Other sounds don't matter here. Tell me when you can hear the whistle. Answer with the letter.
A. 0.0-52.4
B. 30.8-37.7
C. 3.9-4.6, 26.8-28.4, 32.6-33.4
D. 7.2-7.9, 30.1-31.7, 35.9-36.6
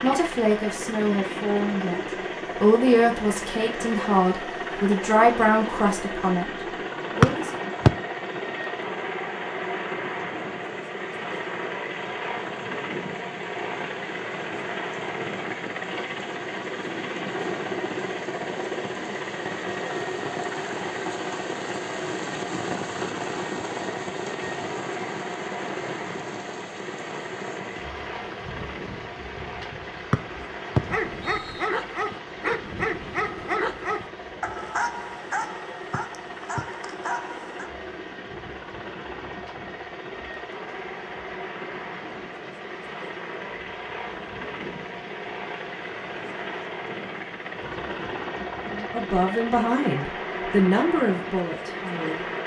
D.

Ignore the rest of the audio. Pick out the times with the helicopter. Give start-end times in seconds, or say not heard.
0.0-52.4.